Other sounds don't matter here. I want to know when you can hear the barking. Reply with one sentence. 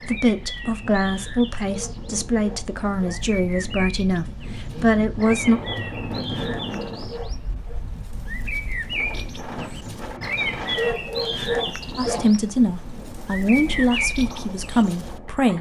The barking can be heard from 1.6 to 3.2 s, from 6.3 to 7.8 s and from 10.6 to 12.3 s.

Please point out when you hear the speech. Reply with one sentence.
You can hear the speech from 0.0 to 5.6 s and from 11.9 to 15.5 s.